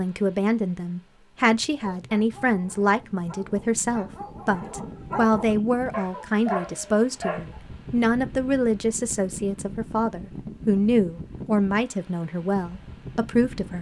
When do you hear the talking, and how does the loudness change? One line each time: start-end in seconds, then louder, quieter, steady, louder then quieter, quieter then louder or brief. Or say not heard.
0.0-13.7 steady.